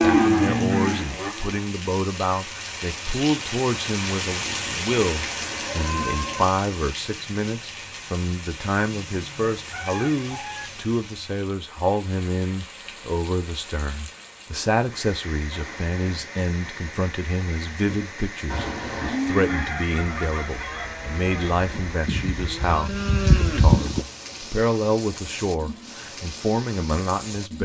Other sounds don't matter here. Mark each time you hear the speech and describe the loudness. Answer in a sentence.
The speech can be heard from 0.0 to 27.6 s, at a steady volume.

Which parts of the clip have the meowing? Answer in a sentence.
You can hear the meowing from 5.0 to 6.5 s, from 15.5 to 16.2 s and from 18.4 to 19.2 s.